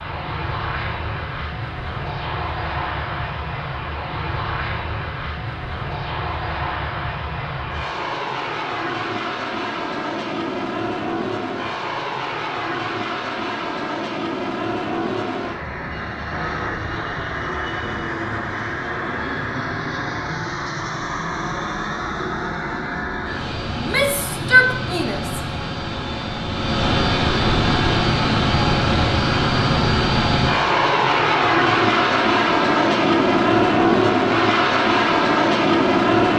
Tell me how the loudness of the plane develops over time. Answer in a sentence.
The volume of the plane goes up.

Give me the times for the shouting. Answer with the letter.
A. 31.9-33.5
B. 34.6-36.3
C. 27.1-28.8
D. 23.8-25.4
D.